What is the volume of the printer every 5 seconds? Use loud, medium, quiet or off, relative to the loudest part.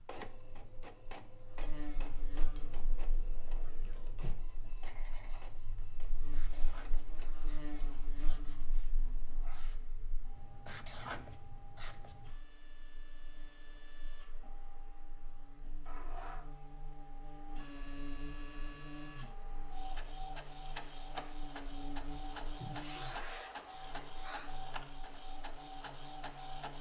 medium, quiet, quiet, medium, loud, loud.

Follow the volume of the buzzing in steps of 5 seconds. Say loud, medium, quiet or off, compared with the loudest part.
loud, loud, quiet, loud, loud, loud.